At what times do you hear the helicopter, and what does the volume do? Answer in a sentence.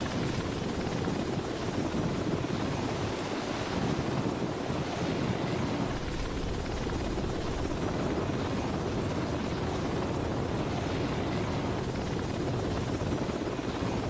The helicopter can be heard from 0.0 to 14.0 s, at a steady volume.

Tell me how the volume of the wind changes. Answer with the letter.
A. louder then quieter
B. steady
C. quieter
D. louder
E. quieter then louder
B.